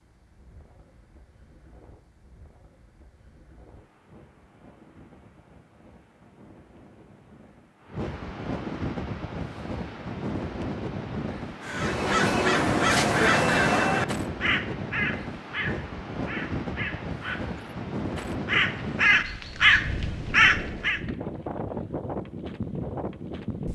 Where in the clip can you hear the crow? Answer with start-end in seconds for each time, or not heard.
11.7-21.0.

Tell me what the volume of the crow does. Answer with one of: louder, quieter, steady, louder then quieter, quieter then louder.
quieter then louder.